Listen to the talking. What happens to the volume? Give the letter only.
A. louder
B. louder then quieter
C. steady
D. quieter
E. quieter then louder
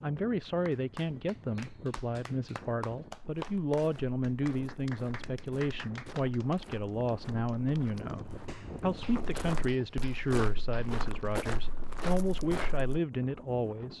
C.